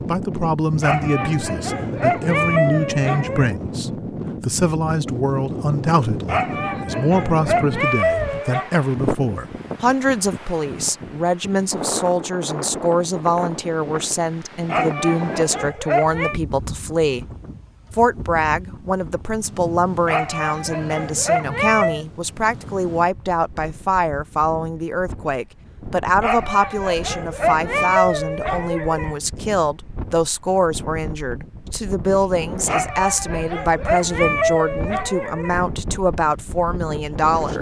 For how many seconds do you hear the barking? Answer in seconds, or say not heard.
15 s.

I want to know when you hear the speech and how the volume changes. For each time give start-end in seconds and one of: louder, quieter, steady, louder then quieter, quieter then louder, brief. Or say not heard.
0.1-17.2 steady
17.9-37.5 steady.